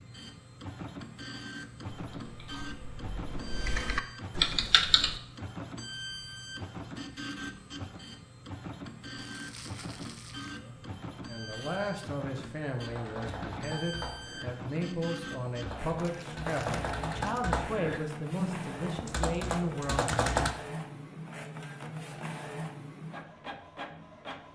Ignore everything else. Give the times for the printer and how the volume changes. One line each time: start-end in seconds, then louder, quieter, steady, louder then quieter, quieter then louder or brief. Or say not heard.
0.0-24.4 steady.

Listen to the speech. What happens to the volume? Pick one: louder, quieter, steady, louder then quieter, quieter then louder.
steady.